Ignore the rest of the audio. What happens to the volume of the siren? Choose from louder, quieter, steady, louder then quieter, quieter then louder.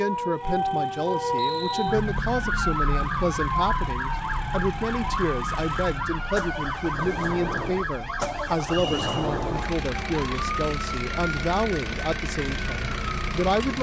quieter.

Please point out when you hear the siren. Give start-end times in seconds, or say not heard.
0.0-13.7.